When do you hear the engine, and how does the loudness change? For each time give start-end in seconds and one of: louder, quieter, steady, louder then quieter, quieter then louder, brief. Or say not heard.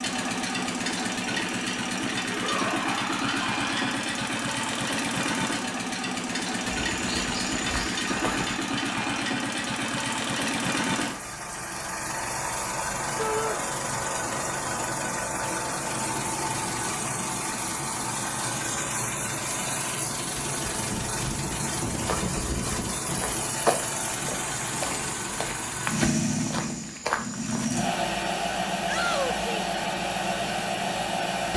0.0-31.5 steady.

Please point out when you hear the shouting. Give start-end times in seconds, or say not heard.
2.2-4.0, 13.2-13.6, 28.9-29.6.